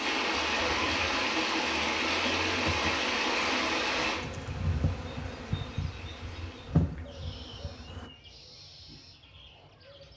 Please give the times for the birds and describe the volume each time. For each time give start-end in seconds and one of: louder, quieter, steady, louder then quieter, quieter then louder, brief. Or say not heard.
4.2-10.1 quieter.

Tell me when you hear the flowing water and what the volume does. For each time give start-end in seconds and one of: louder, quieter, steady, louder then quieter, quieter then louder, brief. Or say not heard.
0.0-7.0 quieter.